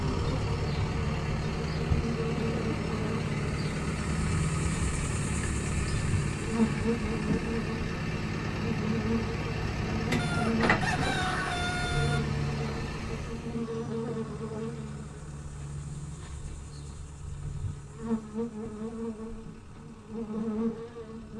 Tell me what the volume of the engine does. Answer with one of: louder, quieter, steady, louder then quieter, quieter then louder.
quieter.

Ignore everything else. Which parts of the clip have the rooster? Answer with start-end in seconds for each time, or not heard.
10.2-12.2.